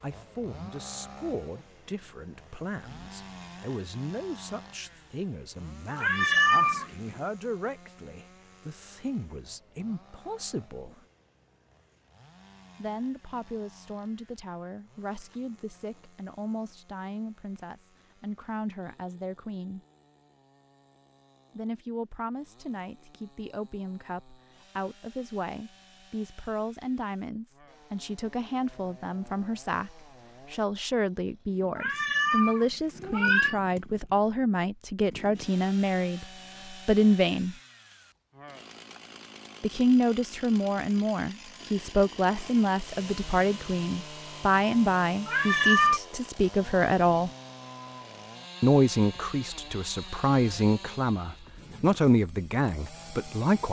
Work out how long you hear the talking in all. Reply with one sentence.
The talking can be heard for 47 seconds in total.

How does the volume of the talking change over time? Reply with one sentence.
The loudness of the talking goes up.